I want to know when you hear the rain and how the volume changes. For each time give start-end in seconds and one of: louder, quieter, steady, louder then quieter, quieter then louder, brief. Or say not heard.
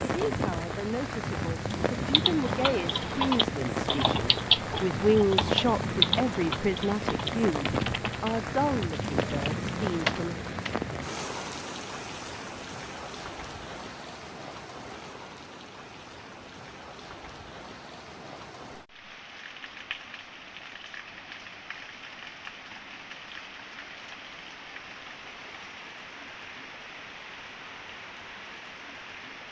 0.0-29.4 quieter.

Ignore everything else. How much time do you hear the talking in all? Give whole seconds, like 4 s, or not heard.
10 s.